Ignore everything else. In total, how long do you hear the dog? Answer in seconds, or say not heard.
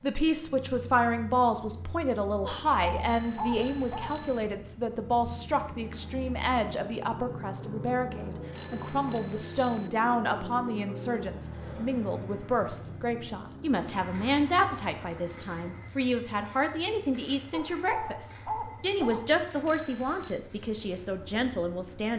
4 s.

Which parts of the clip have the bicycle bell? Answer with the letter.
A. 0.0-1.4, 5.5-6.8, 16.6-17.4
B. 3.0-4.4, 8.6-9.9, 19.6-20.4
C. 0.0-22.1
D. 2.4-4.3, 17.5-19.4
B.